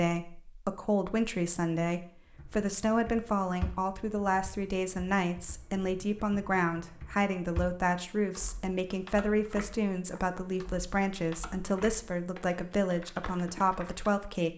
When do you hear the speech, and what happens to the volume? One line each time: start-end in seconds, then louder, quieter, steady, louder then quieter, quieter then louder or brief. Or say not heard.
0.0-14.5 steady.